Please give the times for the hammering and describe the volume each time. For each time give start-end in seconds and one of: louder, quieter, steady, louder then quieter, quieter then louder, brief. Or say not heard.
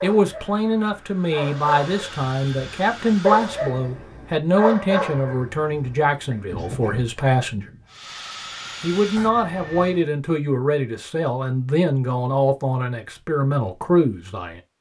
not heard.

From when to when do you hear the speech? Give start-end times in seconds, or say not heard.
0.0-7.7, 8.8-14.6.